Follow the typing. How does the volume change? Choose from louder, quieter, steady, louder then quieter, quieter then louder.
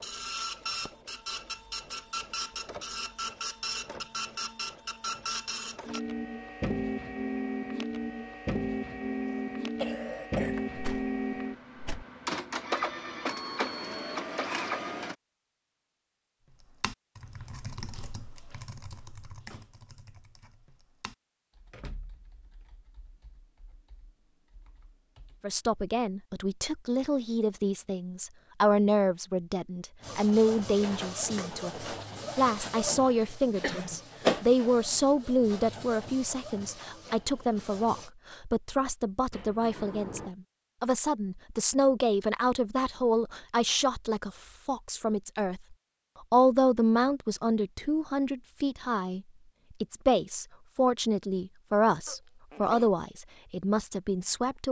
quieter.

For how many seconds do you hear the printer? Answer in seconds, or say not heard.
23 s.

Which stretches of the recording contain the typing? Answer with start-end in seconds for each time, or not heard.
16.4-25.6.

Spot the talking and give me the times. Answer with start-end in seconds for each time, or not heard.
25.4-49.2, 49.8-54.6.